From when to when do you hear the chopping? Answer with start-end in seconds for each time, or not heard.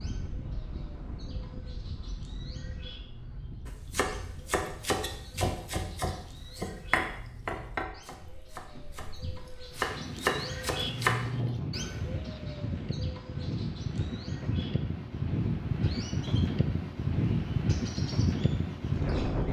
3.6-9.2, 9.8-11.2.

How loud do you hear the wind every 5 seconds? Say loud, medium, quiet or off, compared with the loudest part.
quiet, quiet, medium, loud.